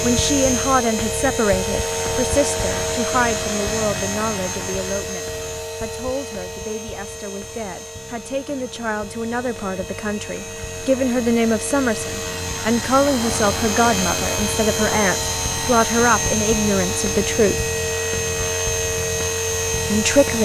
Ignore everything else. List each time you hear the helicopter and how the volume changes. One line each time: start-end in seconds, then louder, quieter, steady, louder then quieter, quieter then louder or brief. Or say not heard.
0.0-20.4 quieter then louder.